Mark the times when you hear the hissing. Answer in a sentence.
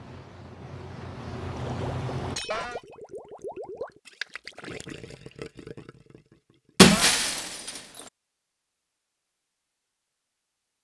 You can hear the hissing from 0.0 to 2.4 s.